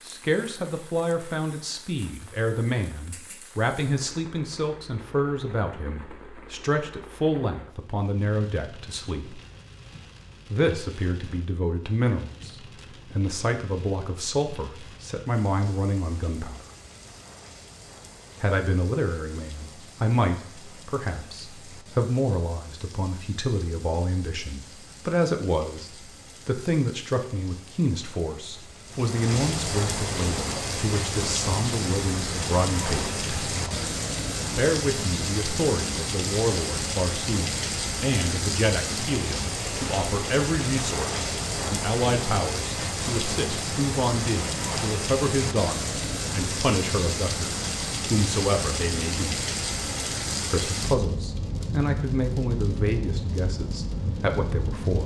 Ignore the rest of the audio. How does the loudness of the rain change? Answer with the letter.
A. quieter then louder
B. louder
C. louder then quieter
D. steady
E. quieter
B.